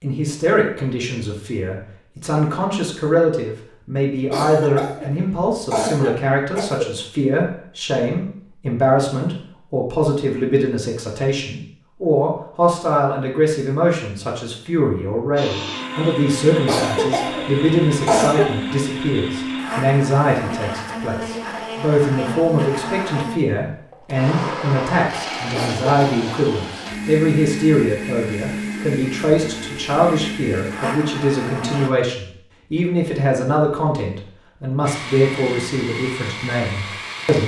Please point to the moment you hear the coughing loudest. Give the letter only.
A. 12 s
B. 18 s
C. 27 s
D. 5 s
B.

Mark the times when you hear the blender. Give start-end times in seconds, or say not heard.
15.3-31.9, 34.9-37.4.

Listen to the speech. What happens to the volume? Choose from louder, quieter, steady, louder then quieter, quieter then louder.
steady.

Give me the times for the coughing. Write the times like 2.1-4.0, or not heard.
4.3-6.9, 16.6-18.6, 25.5-26.2.